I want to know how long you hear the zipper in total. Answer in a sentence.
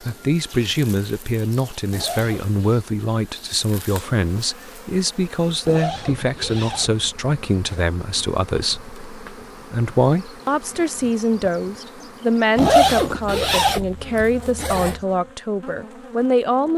The zipper can be heard for 5 seconds in total.